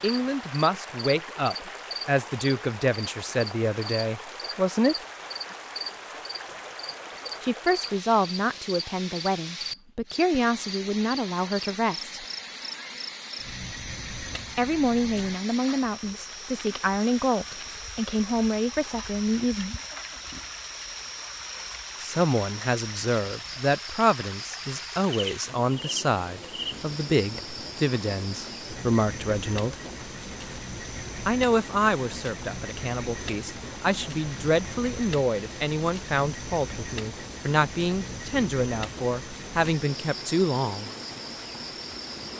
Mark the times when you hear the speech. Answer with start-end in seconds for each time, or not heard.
0.0-5.0, 7.4-12.2, 14.6-19.8, 22.0-29.8, 31.2-40.9.